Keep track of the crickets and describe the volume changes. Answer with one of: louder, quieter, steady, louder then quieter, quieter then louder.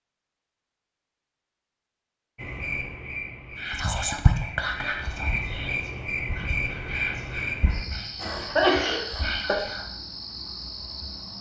louder then quieter.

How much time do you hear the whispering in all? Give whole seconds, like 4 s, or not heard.
6 s.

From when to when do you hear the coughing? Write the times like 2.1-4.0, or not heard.
8.2-9.6.